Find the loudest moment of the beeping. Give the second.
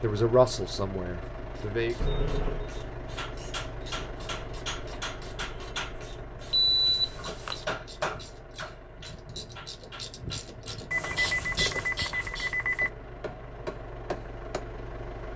7 s.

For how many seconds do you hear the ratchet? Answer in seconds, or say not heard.
11 s.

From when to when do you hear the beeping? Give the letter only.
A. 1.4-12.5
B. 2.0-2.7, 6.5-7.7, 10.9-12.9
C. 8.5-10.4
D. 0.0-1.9
B.